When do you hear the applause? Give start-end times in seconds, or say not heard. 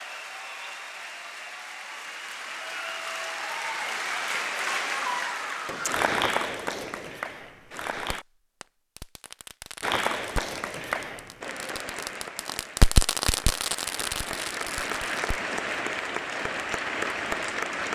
0.0-8.2, 9.8-17.9.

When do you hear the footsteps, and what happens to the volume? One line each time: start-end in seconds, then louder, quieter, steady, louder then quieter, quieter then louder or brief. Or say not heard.
not heard.